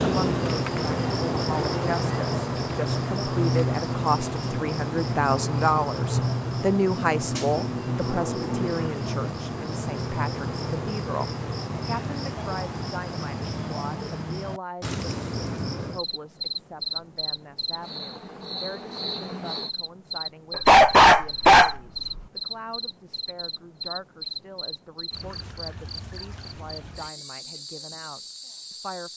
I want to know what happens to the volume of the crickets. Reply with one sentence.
The volume of the crickets goes down.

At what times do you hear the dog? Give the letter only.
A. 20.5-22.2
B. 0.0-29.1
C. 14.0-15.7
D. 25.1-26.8
A.